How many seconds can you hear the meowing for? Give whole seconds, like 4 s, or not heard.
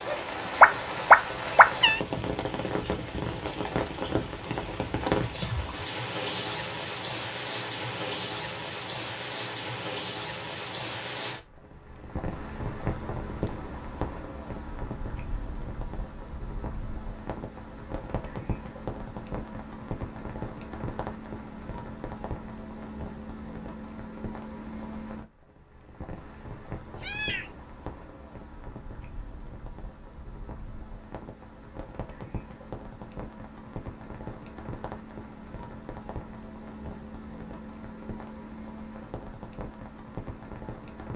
2 s.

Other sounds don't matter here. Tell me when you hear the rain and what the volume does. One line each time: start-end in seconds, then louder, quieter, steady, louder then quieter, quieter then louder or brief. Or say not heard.
0.0-41.1 quieter.